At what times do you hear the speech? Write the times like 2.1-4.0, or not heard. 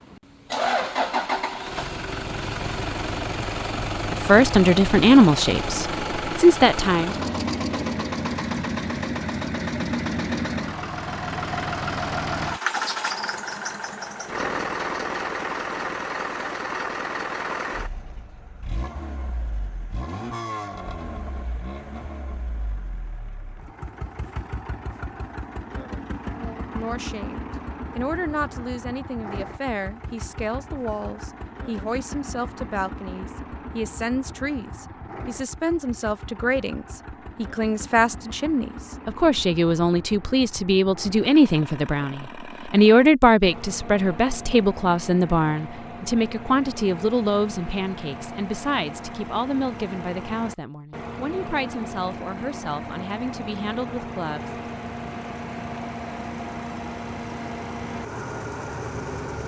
4.1-7.2, 26.3-54.5.